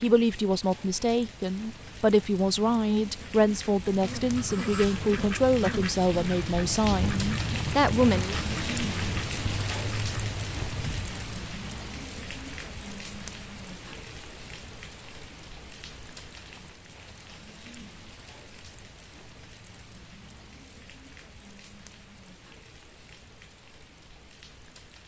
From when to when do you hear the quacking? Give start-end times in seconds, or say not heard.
3.8-11.2.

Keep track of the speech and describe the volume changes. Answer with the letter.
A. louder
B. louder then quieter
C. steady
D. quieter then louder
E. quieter
C.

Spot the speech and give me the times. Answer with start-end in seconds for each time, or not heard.
0.0-8.3.